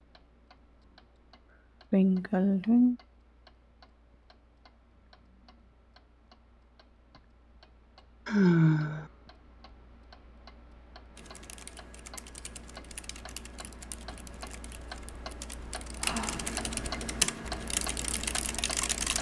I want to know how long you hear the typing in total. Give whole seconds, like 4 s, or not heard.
8 s.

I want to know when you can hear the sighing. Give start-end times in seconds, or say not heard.
1.9-3.0, 8.2-9.1, 16.0-16.4.